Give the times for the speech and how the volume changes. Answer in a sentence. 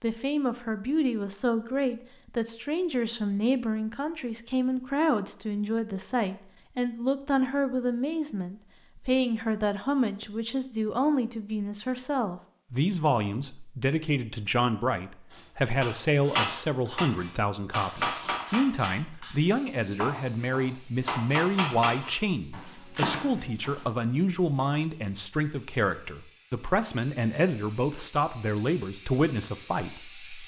The speech can be heard from 0.0 to 30.4 s, at a steady volume.